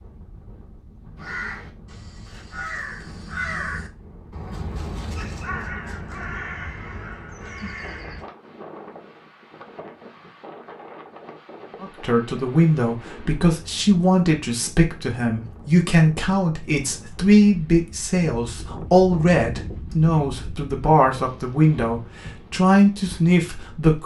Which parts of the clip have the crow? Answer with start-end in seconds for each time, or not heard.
1.1-8.2.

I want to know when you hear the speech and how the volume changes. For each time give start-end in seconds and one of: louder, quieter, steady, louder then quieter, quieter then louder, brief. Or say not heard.
11.8-24.0 steady.